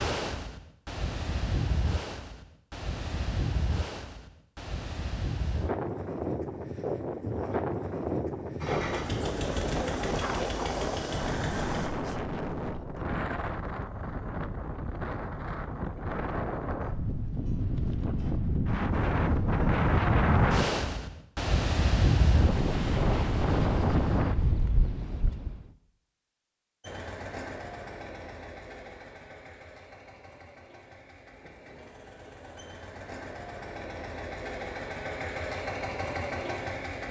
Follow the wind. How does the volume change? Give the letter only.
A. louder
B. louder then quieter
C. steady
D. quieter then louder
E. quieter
A.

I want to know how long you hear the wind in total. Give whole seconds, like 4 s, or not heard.
26 s.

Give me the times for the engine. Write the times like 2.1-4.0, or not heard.
8.6-11.9, 26.8-37.0.